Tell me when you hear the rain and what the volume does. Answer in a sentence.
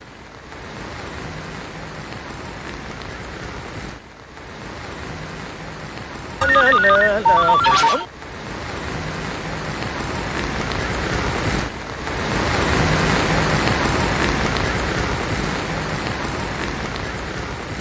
You can hear the rain from 0.0 to 17.7 s, getting louder.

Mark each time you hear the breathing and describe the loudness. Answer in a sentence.
You can't hear the breathing here.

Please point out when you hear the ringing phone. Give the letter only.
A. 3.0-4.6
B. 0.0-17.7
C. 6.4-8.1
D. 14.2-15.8
C.